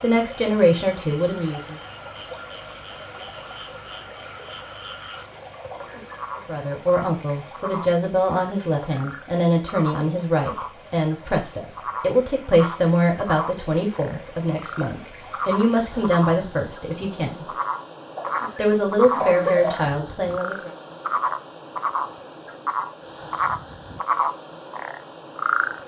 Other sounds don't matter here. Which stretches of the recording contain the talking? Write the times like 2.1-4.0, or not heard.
0.0-1.8, 6.5-17.6, 18.6-20.7.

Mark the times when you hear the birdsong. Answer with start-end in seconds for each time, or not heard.
not heard.